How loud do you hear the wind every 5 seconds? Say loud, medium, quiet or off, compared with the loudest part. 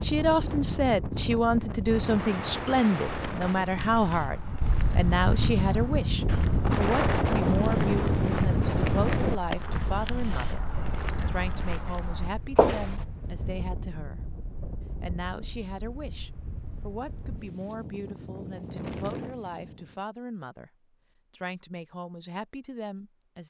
medium, loud, quiet, quiet, off.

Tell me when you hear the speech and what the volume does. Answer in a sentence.
You can hear the speech from 0.0 to 14.3 s, getting quieter; from 15.0 to 20.7 s, at a steady volume; and briefly from 21.3 to 23.4 s.